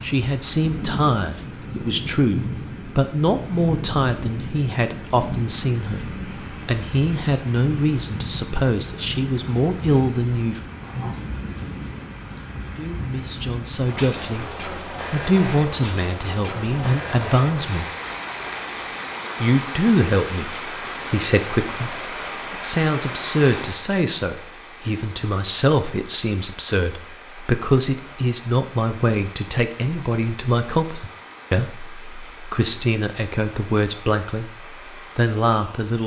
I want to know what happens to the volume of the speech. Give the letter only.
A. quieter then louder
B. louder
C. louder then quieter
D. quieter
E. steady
E.